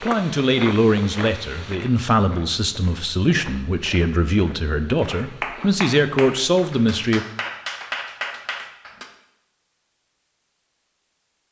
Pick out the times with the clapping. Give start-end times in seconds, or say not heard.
5.0-9.1.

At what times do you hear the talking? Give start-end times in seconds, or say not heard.
0.0-7.2.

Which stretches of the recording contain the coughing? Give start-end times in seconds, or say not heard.
not heard.